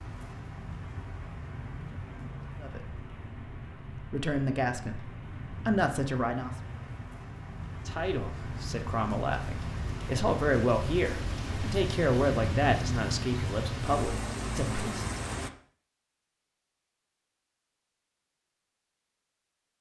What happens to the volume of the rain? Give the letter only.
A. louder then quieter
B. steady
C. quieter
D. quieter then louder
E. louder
E.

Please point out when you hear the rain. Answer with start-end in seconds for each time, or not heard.
0.0-15.5.